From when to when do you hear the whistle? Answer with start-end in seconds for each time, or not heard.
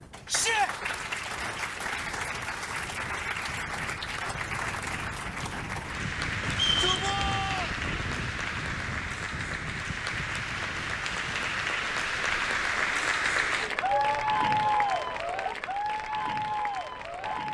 6.5-7.1.